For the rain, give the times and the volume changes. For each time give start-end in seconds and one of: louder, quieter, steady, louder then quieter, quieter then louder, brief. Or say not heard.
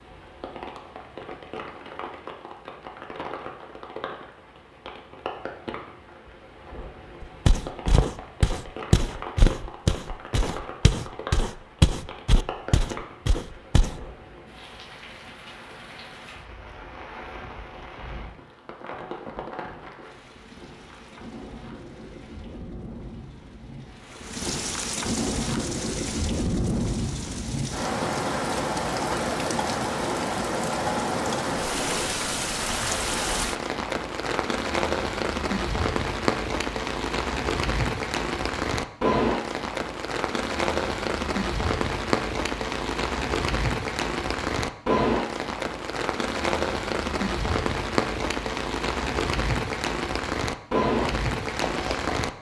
0.0-52.3 louder.